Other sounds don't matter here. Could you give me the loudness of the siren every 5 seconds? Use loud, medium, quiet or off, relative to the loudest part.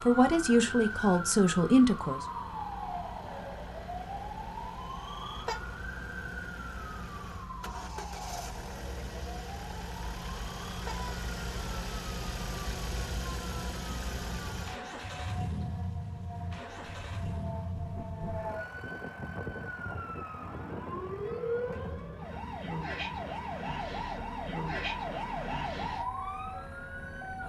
loud, medium, medium, medium, loud, loud.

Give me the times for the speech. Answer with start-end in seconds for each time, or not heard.
0.0-2.2.